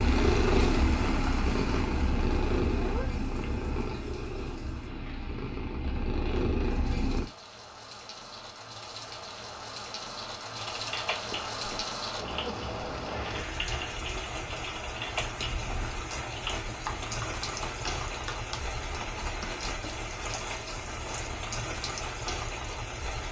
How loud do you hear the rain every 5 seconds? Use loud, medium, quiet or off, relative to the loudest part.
loud, medium, loud, loud, loud.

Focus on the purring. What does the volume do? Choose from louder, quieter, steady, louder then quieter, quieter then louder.
quieter then louder.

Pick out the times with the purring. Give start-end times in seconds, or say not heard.
0.0-7.3.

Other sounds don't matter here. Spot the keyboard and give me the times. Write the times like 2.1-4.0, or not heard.
10.6-19.4.